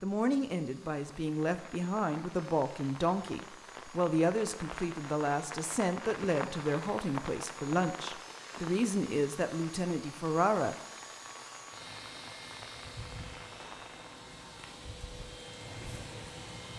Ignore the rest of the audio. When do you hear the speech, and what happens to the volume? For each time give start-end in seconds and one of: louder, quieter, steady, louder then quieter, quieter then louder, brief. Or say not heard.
0.0-10.8 steady.